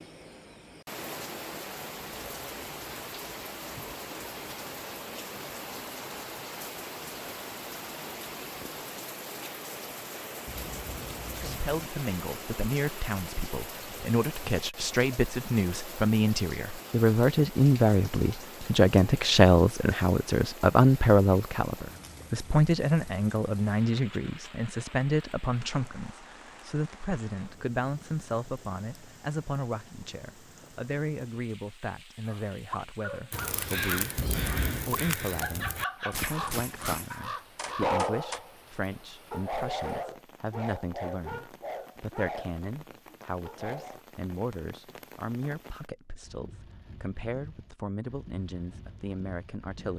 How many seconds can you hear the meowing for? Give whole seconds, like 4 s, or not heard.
2 s.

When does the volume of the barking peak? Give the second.
38 s.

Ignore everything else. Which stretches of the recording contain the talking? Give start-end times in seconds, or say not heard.
11.3-49.9.